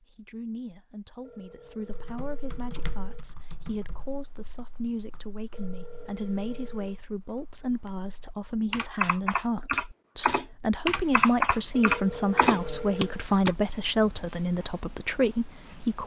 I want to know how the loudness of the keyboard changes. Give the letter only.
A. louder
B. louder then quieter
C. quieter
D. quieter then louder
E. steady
D.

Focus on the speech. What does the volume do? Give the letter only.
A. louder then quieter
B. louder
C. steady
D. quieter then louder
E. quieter
B.